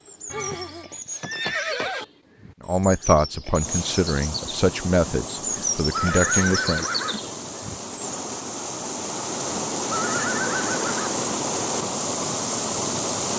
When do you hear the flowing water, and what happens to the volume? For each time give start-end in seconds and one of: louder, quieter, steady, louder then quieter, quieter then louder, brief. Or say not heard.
3.5-13.3 louder.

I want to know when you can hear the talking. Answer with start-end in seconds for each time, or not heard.
2.6-6.8.